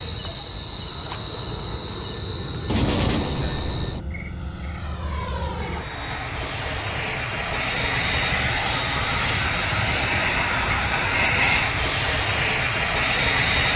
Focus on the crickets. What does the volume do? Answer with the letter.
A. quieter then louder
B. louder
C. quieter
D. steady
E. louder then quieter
C.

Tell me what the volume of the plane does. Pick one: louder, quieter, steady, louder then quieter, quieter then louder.
louder.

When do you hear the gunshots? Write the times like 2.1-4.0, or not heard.
2.6-4.0.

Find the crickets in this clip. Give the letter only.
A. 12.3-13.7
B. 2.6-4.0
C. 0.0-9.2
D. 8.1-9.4
C.